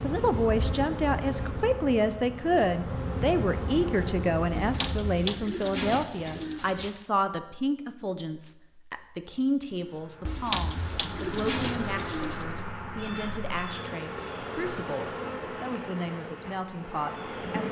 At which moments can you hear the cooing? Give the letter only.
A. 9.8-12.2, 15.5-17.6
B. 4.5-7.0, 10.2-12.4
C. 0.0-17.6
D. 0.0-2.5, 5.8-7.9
B.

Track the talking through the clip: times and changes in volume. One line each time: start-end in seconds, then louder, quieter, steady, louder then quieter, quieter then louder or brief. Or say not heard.
0.0-17.6 quieter.